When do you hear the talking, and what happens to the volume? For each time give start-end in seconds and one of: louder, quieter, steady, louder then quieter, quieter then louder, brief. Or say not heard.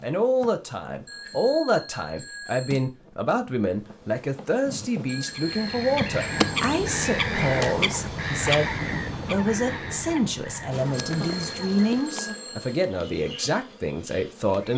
0.0-14.7 steady.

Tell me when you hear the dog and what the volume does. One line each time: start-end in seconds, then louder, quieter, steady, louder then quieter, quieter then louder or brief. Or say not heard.
not heard.